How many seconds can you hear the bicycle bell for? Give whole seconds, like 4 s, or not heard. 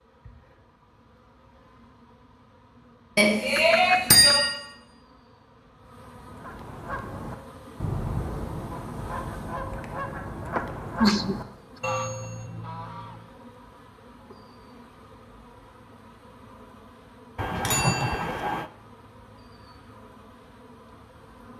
2 s.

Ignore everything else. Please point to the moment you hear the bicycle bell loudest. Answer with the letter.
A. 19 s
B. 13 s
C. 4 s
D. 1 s
C.